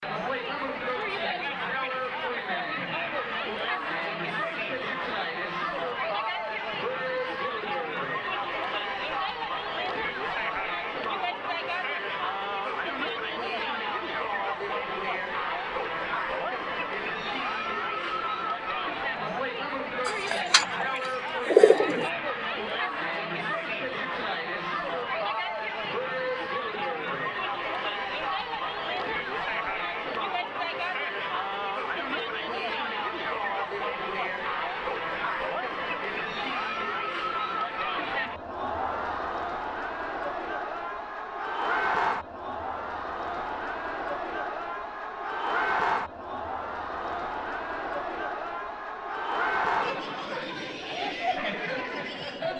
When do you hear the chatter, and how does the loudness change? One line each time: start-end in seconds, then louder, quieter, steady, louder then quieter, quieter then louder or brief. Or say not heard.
0.0-52.5 steady.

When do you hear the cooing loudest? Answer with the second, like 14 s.
22 s.